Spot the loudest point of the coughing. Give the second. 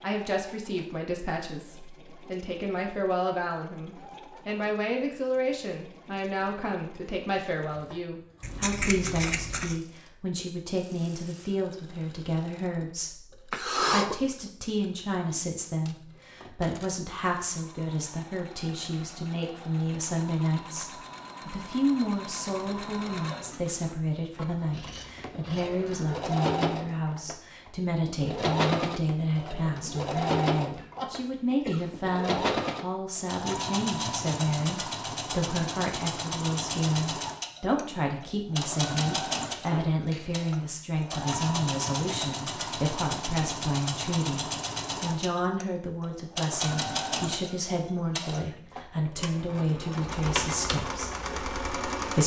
14 s.